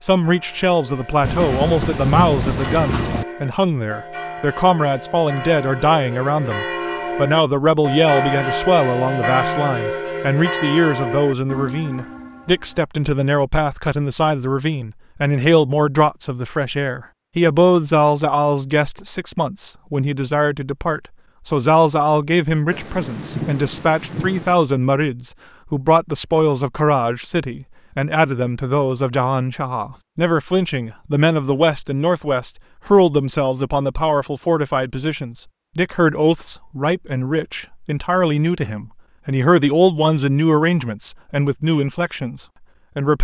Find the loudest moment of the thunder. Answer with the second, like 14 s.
2 s.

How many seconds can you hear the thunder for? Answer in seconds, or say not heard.
4 s.